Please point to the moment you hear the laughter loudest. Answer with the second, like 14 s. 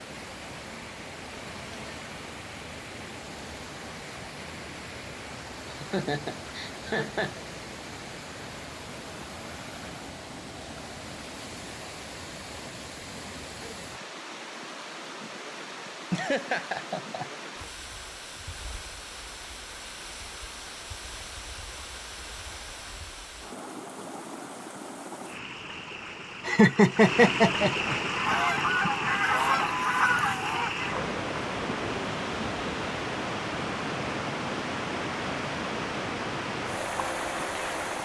27 s.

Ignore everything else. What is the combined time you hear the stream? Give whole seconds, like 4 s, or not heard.
38 s.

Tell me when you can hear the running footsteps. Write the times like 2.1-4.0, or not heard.
not heard.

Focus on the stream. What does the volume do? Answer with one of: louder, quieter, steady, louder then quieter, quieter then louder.
louder.